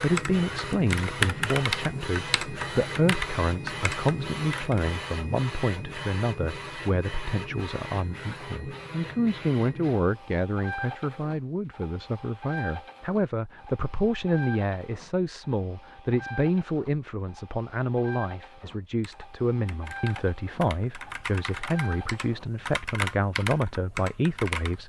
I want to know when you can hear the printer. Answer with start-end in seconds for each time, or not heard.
0.0-22.5.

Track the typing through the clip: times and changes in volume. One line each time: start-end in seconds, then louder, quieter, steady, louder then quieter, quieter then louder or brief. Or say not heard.
0.0-4.8 louder then quieter
19.0-24.8 louder.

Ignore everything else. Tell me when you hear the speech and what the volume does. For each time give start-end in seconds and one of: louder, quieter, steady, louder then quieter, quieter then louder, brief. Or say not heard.
0.0-24.8 steady.